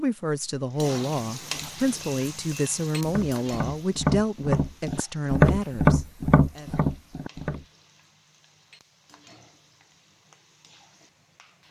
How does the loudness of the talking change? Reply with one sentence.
The loudness of the talking stays about the same.